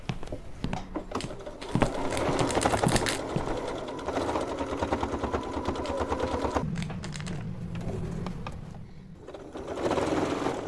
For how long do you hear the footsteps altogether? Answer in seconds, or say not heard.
4 s.